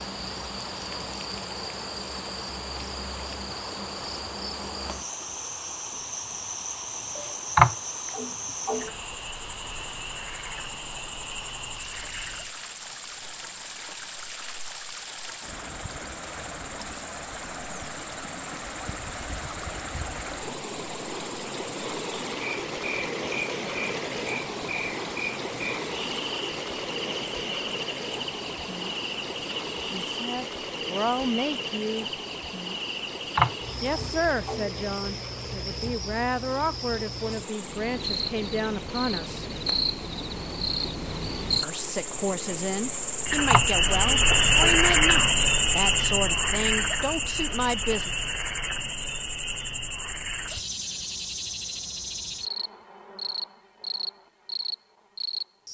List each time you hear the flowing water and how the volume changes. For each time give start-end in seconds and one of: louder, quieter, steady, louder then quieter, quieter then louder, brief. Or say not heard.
0.0-43.4 louder then quieter.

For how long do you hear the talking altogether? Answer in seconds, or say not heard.
14 s.